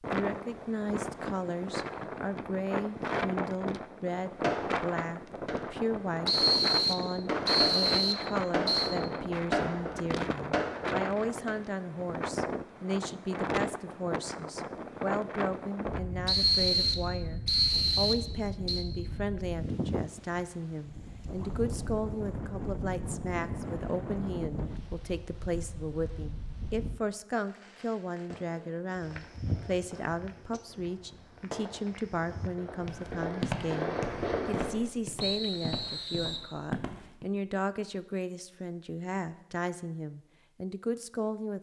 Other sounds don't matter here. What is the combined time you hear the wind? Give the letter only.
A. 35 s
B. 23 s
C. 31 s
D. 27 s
D.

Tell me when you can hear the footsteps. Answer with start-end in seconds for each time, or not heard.
28.9-37.2.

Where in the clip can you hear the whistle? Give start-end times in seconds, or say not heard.
6.2-8.9, 16.2-18.9, 35.2-36.5.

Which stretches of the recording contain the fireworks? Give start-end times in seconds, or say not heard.
4.4-11.6, 27.4-34.8.